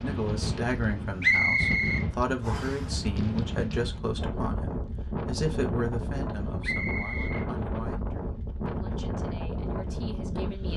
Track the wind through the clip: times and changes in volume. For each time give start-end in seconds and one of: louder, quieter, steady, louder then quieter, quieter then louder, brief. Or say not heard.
0.0-10.7 steady.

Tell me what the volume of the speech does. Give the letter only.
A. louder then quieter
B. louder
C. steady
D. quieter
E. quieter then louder
D.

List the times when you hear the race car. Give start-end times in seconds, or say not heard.
not heard.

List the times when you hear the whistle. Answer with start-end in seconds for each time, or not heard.
1.2-2.8, 6.6-8.0.